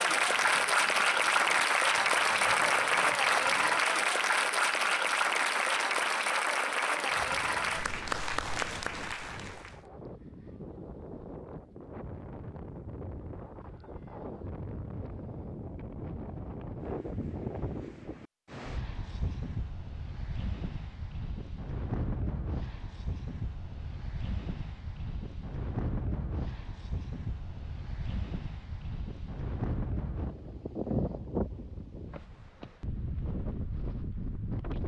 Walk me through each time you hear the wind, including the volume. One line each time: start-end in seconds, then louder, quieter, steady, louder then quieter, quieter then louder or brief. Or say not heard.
0.0-34.8 louder.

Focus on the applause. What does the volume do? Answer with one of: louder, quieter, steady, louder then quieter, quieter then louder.
quieter.